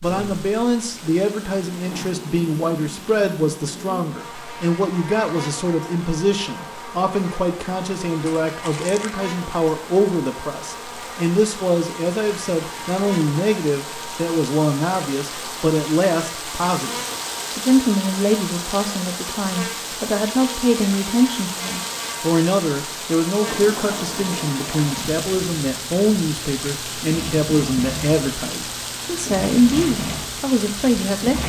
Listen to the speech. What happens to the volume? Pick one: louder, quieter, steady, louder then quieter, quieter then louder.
steady.